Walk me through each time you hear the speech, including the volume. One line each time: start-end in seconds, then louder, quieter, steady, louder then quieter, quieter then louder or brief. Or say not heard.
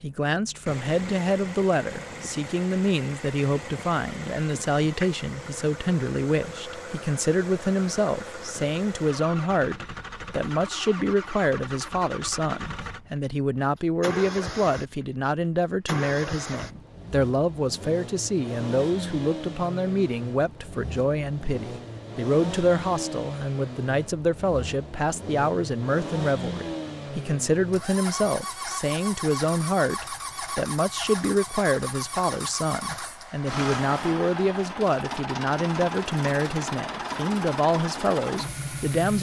0.0-39.1 steady.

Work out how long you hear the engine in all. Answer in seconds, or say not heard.
39 s.